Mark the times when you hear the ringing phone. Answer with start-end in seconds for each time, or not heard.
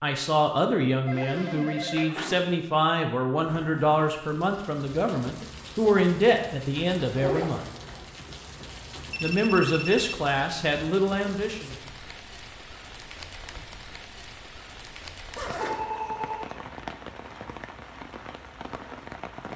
1.1-2.5, 9.1-10.2, 15.6-16.6.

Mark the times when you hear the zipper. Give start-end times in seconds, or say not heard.
3.4-4.0, 7.0-8.1, 15.3-16.1.